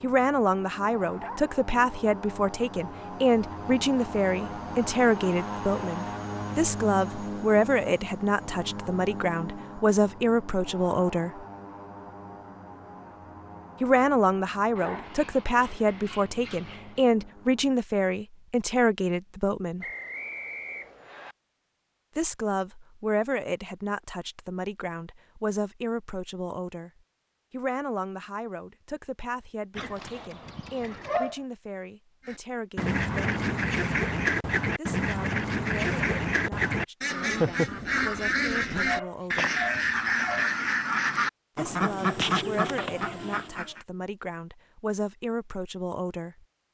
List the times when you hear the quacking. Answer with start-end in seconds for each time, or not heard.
32.2-43.8.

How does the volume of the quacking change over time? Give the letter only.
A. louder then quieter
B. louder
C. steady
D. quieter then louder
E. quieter
C.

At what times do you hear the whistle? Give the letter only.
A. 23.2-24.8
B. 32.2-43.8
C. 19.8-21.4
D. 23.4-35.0
C.